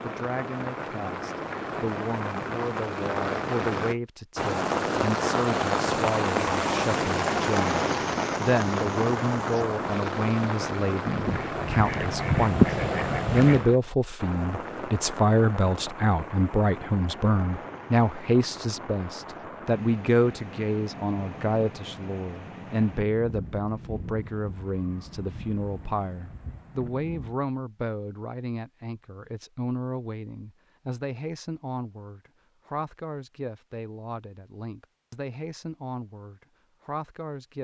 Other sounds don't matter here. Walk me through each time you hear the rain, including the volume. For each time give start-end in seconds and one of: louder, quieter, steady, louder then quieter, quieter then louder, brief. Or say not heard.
0.0-27.4 quieter.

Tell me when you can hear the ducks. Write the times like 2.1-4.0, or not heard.
11.2-13.7.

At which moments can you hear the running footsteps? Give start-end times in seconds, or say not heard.
not heard.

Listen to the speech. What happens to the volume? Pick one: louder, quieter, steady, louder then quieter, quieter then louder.
louder then quieter.